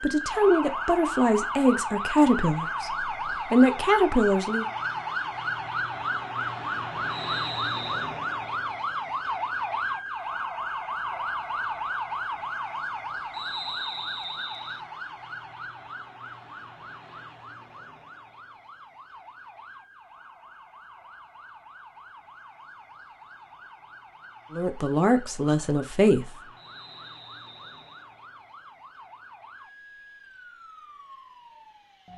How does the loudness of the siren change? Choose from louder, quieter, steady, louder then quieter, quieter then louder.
quieter.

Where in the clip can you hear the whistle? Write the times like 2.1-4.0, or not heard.
7.0-8.2, 13.3-14.8, 26.6-28.1.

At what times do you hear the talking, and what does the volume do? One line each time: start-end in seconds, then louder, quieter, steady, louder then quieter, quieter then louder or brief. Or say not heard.
0.0-4.7 quieter then louder
24.5-26.3 brief.